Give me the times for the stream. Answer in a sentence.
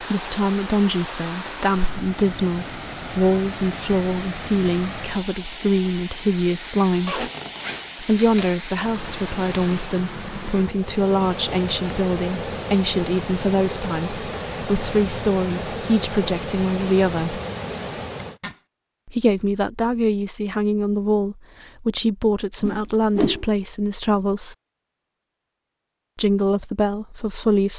You can hear the stream from 0.0 to 18.4 s.